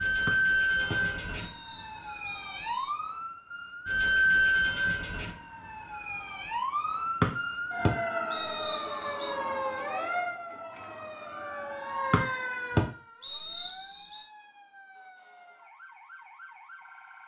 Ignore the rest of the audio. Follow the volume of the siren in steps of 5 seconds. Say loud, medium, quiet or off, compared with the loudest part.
loud, medium, medium, quiet.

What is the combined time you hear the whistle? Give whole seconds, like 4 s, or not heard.
7 s.